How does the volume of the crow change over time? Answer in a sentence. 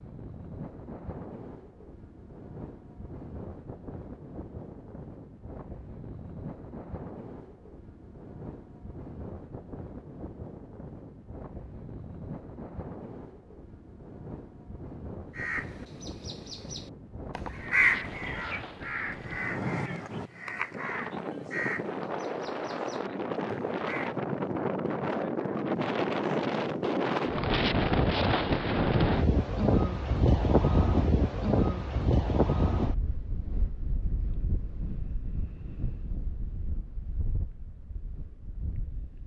The loudness of the crow goes up, then down.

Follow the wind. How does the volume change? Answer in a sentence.
The loudness of the wind goes up, then down.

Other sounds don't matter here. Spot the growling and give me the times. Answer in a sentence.
You can't hear the growling here.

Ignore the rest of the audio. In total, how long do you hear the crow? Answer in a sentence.
You can hear the crow for 9 seconds altogether.